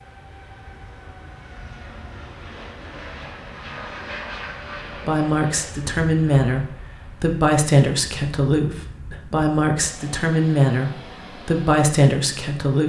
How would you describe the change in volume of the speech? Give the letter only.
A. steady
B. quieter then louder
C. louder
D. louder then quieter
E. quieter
A.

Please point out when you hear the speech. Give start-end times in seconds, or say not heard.
5.0-12.8.